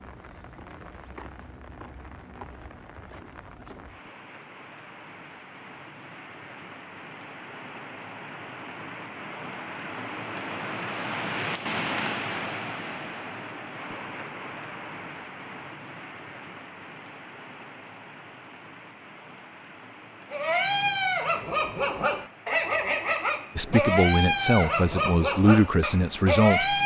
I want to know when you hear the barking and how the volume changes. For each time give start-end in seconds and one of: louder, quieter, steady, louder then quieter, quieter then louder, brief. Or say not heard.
20.3-26.8 steady.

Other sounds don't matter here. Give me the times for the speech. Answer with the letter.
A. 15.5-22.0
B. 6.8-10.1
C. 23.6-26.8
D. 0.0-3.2
C.